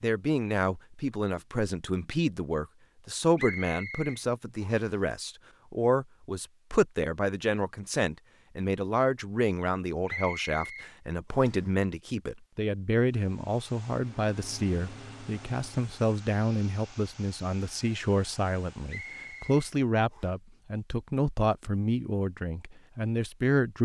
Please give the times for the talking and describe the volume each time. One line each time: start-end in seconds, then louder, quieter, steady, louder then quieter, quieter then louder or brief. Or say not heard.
0.0-23.8 steady.